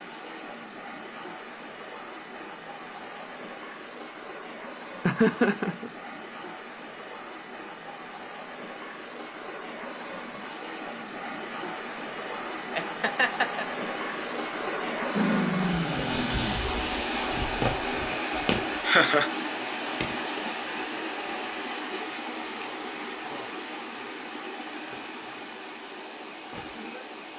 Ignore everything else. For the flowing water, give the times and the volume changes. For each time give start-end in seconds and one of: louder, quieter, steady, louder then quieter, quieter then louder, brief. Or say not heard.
0.0-27.3 louder then quieter.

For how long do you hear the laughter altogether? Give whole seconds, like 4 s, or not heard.
2 s.